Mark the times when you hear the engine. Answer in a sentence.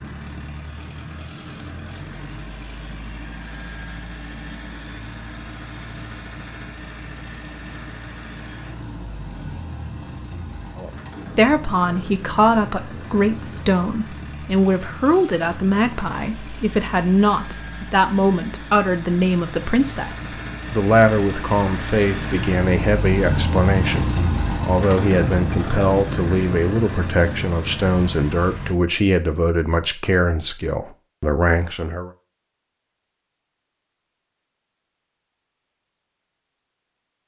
The engine can be heard from 0.0 to 28.8 s.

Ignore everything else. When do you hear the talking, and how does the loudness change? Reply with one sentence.
You can hear the talking from 10.8 to 32.1 s, at a steady volume.